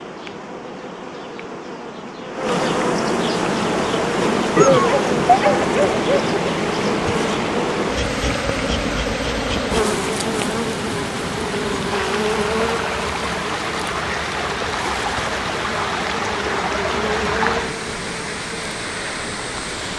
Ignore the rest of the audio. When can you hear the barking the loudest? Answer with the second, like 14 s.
5 s.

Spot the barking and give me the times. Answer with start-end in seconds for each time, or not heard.
4.5-6.3.